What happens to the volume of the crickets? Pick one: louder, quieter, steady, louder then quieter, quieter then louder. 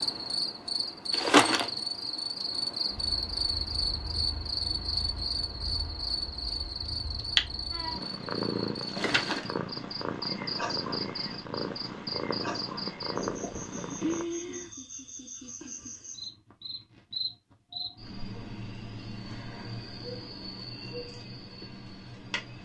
quieter.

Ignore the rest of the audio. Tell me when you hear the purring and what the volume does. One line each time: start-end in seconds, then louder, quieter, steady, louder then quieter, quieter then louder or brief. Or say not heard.
2.9-14.2 louder.